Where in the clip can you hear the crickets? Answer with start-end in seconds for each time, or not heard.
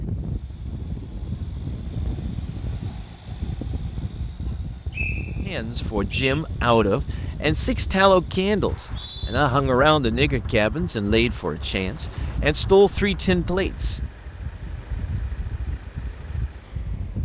not heard.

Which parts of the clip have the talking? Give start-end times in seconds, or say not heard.
5.5-14.0.